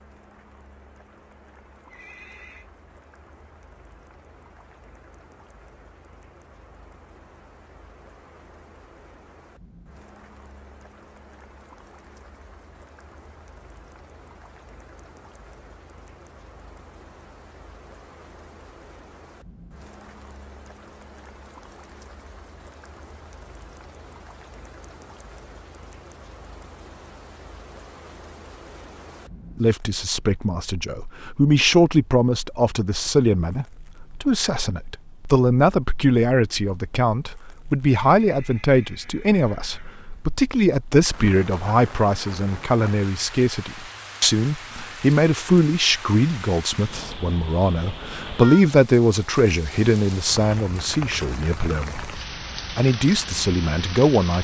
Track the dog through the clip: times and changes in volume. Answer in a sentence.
You can't hear the dog here.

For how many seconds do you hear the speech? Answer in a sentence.
The speech can be heard for 25 seconds in total.